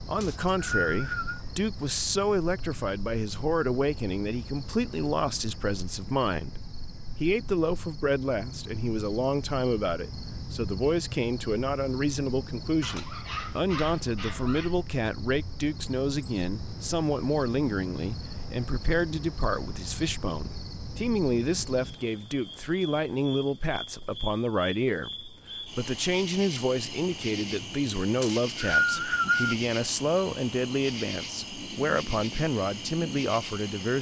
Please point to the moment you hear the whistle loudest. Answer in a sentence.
The loudest moment of the whistle is at 29 seconds.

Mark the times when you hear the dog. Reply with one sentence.
The dog can be heard from 12.8 to 14.8 s.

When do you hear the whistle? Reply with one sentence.
The whistle can be heard from 0.2 to 1.4 s and from 28.2 to 29.6 s.